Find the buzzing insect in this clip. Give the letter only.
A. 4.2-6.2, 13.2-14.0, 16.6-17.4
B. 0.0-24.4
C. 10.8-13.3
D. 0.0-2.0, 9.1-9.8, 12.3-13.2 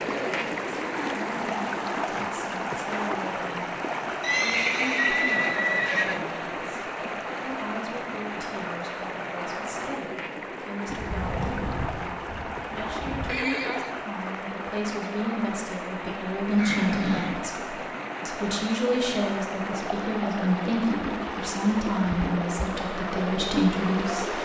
C.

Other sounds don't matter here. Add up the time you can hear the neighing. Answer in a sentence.
The neighing can be heard for 4 seconds in total.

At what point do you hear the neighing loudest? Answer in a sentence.
The volume of the neighing peaks at 5 seconds.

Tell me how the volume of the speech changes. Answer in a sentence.
The volume of the speech goes up.